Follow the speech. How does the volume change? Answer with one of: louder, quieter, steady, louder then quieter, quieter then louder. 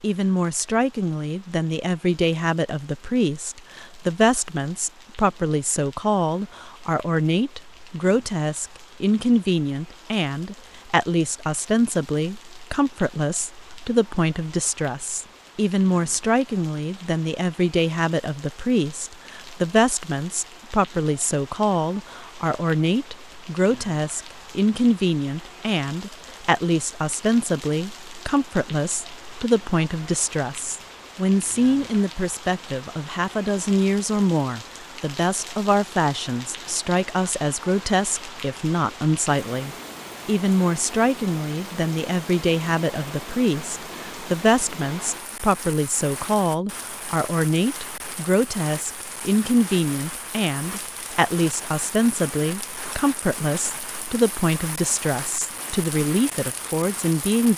steady.